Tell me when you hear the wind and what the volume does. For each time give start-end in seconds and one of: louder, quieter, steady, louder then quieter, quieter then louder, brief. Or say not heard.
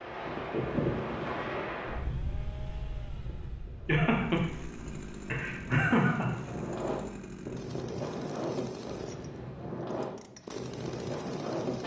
0.0-11.8 quieter then louder.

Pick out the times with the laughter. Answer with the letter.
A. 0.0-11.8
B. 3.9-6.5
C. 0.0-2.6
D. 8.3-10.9
B.